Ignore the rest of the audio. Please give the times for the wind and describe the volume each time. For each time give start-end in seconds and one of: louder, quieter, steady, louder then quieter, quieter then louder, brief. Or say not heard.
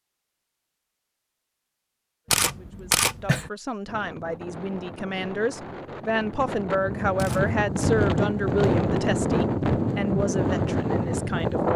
3.9-11.7 louder.